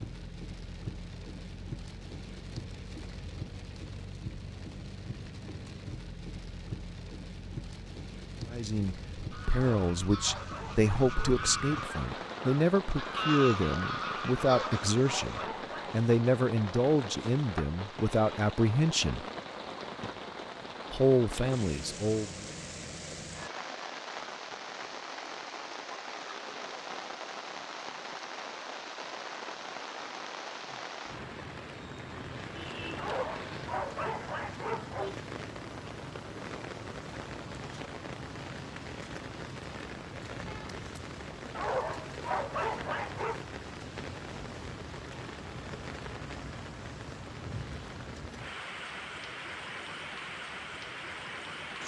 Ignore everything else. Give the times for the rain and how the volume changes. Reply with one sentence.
The rain can be heard from 0.0 to 51.8 s, at a steady volume.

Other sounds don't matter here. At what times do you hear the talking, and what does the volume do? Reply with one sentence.
The talking can be heard from 8.4 to 19.2 s, at a steady volume; and briefly from 20.9 to 22.4 s.